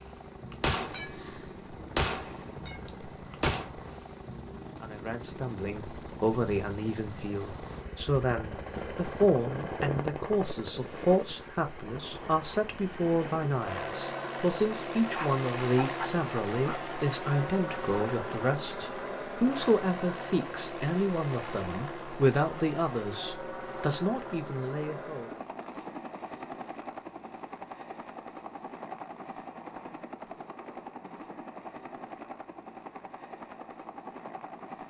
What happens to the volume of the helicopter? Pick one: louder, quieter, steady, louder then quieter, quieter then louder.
louder then quieter.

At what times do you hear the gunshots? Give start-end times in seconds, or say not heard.
0.5-3.7.